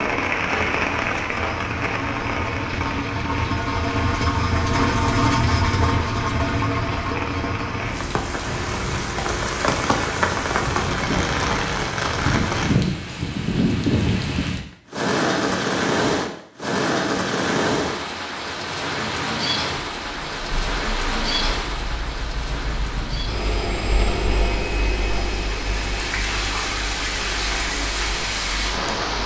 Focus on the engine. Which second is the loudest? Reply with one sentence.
The volume of the engine peaks at 5 seconds.